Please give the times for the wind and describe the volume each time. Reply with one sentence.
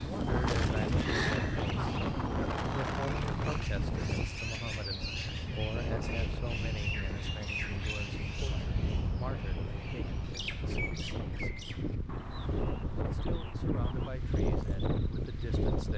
The wind can be heard from 0.0 to 15.9 s, getting quieter then louder.